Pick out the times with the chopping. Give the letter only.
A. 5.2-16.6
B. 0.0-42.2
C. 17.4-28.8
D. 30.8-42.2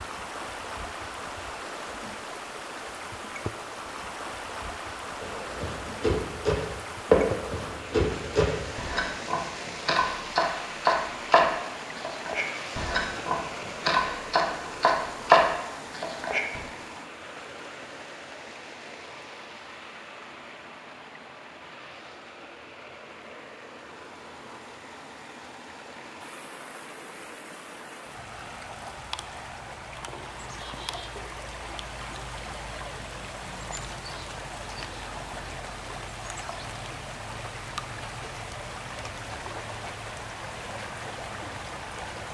A.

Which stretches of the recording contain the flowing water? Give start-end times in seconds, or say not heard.
0.0-42.2.